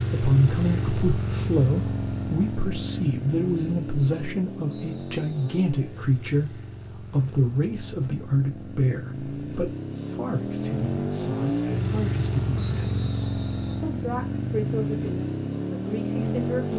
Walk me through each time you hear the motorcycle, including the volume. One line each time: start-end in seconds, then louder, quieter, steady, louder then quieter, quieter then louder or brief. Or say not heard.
0.0-16.7 quieter then louder.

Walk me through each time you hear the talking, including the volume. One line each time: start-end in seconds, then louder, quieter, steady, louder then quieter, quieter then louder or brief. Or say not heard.
0.1-16.7 quieter.